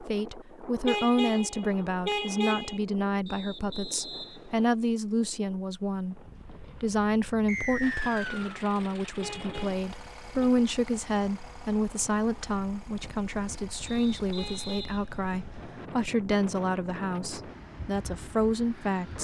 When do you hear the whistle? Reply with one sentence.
You can hear the whistle from 3.2 to 4.7 s, from 7.5 to 8.6 s and from 13.8 to 15.8 s.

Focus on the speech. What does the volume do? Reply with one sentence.
The volume of the speech stays about the same.